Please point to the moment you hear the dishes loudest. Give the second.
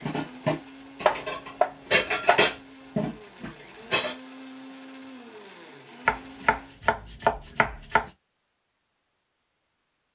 2 s.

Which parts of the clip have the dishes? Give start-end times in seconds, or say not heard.
0.0-4.2.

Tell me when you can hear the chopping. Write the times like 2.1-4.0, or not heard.
1.0-2.5, 6.0-8.1.